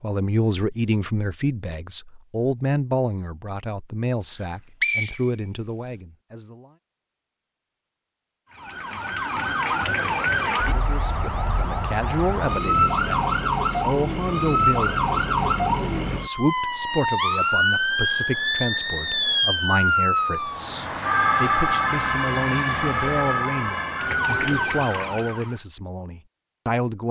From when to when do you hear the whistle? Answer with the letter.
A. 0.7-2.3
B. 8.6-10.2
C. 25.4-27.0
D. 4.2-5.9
D.